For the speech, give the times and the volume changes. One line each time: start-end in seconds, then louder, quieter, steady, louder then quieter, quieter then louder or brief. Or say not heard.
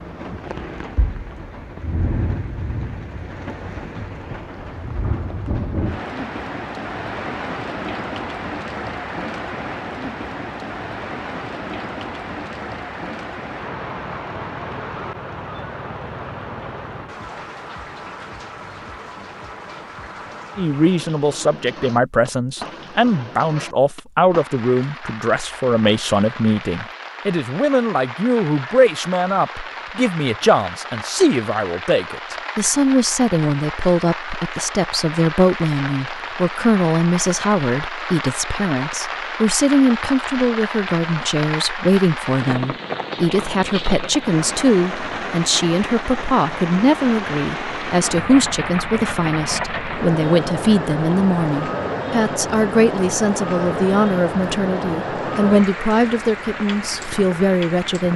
20.6-58.1 steady.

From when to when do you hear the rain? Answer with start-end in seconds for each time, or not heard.
0.0-58.1.